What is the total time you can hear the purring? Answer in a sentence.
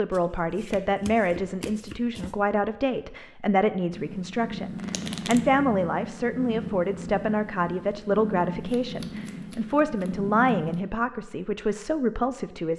You can hear the purring for 7 seconds altogether.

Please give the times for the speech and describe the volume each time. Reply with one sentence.
You can hear the speech from 0.0 to 12.7 s, at a steady volume.